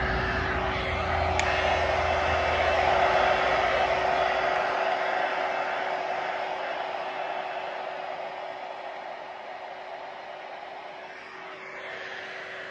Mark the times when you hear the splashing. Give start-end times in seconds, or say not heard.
not heard.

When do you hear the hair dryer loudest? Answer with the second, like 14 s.
3 s.